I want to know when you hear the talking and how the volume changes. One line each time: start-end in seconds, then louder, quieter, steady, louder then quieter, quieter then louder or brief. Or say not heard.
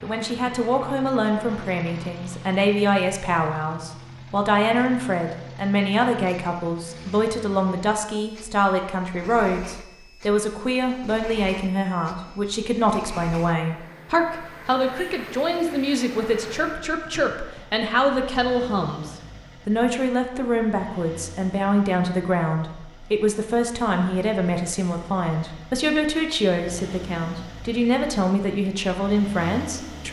0.0-30.0 steady.